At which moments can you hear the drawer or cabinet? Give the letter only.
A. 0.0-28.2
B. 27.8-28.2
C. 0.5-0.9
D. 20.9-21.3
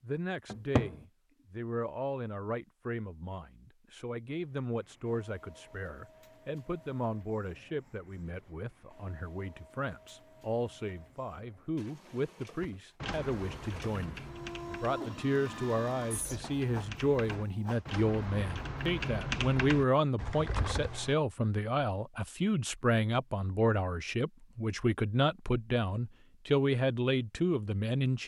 C.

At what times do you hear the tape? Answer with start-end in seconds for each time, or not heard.
not heard.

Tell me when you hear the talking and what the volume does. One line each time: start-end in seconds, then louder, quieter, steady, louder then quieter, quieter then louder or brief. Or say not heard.
0.0-28.2 louder.